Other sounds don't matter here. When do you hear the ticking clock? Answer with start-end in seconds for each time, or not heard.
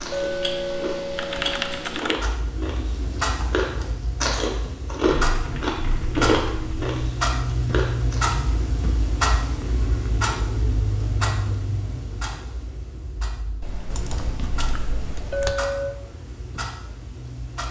0.0-17.6.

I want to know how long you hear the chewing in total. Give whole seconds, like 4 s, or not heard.
7 s.